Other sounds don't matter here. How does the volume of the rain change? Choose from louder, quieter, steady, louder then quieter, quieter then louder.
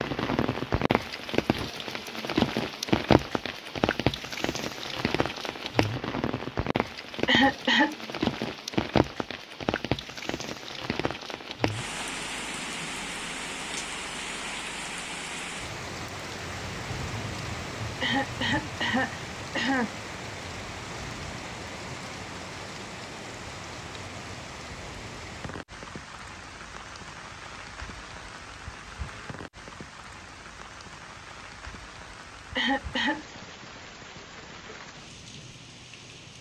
quieter.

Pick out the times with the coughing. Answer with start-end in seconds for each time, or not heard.
7.2-8.0, 18.0-19.9, 32.5-33.2.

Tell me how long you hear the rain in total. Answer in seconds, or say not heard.
36 s.